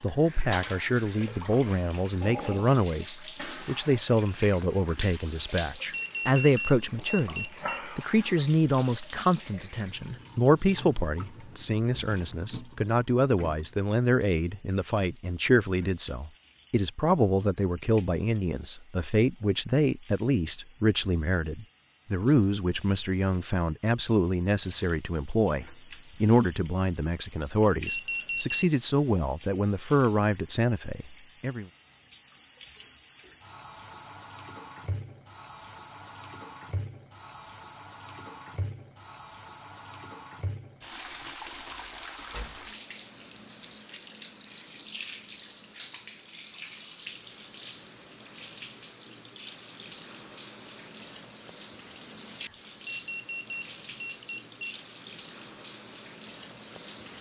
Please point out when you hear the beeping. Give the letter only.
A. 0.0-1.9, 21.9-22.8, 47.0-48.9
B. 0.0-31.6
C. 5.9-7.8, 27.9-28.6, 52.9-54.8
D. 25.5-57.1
C.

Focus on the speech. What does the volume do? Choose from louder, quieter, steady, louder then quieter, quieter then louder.
steady.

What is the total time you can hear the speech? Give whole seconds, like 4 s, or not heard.
32 s.